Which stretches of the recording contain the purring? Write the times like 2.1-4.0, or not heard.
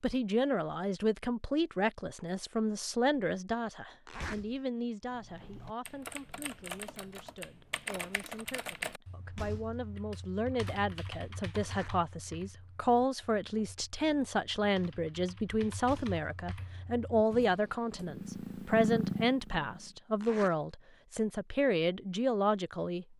17.9-19.9.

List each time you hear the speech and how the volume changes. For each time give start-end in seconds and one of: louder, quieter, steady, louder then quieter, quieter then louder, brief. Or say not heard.
0.0-23.1 quieter then louder.